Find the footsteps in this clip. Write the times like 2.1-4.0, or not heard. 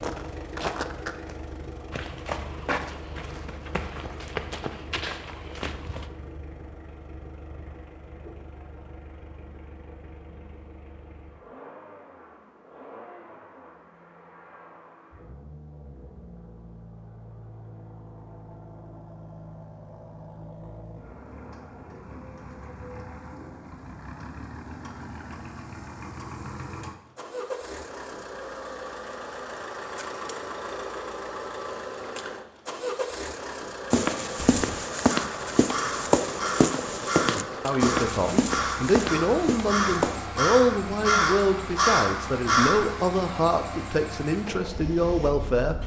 0.0-6.1, 33.9-40.2.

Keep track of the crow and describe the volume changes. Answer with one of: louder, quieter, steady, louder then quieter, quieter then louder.
louder.